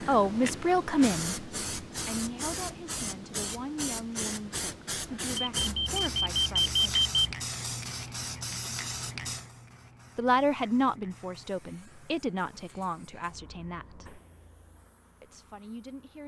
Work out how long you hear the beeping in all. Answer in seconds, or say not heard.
2 s.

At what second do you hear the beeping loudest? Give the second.
7 s.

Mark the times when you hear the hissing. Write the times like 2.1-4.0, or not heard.
0.0-16.2.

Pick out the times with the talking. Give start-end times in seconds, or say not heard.
0.1-6.8, 10.2-14.2, 15.2-16.2.